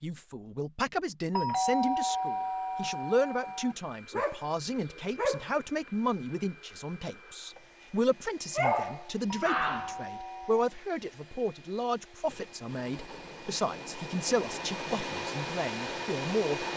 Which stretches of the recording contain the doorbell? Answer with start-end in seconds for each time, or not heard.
1.4-3.8, 9.3-10.6.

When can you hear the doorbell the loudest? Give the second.
2 s.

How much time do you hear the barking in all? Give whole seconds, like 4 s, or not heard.
3 s.